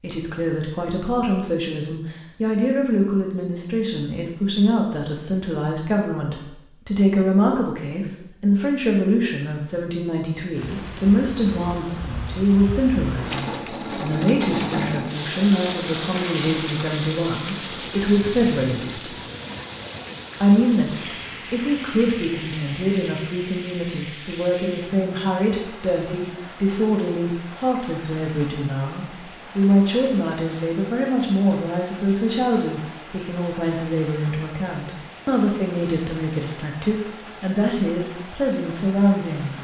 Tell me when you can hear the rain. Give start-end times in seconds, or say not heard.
10.5-39.5.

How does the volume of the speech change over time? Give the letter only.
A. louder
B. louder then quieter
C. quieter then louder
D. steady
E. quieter
D.